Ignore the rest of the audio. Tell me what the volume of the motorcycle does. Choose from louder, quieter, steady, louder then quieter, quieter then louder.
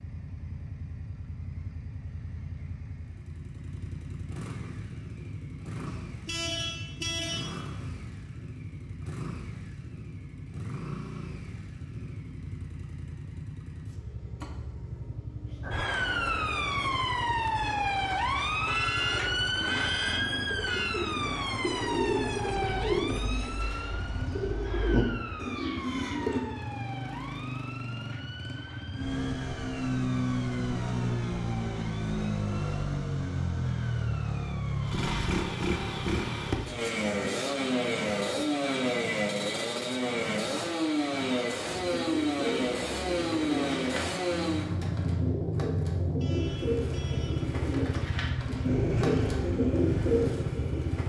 louder.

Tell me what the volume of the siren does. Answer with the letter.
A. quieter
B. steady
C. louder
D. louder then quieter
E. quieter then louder
A.